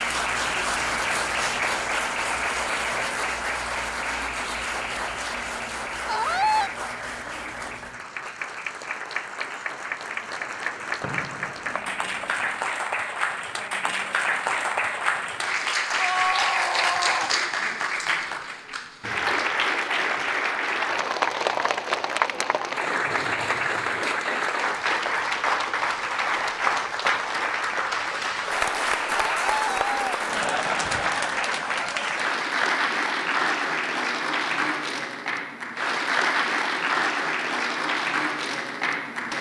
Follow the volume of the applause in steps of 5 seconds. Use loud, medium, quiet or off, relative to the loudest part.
loud, medium, loud, loud, loud, loud, loud, loud.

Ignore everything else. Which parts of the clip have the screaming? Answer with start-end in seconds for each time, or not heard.
6.0-6.7, 15.9-17.4, 29.1-30.1.